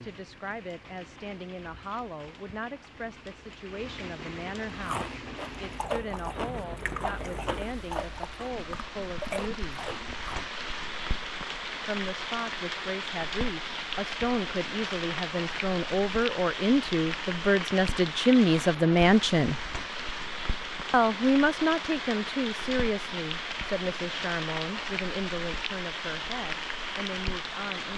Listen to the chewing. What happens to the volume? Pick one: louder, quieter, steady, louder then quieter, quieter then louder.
quieter then louder.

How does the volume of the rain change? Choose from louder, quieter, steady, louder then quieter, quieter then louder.
louder.